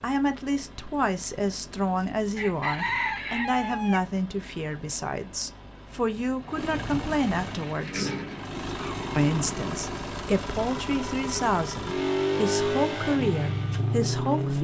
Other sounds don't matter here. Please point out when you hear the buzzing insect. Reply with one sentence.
The buzzing insect can't be heard in this clip.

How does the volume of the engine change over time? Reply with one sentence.
The loudness of the engine goes up.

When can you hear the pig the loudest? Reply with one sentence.
The loudest moment of the pig is at 8 seconds.